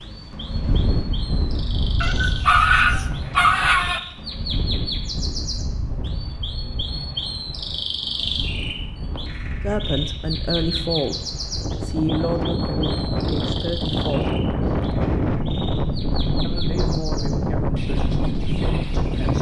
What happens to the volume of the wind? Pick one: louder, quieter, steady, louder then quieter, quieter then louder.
quieter then louder.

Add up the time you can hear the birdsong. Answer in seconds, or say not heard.
19 s.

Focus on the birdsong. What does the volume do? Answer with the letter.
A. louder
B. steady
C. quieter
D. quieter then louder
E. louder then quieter
E.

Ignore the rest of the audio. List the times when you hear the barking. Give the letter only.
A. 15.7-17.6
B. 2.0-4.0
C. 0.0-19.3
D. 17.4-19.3
B.